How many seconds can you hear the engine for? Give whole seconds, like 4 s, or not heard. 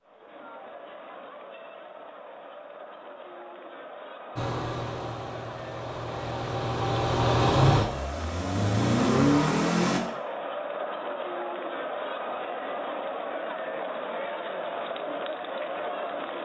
6 s.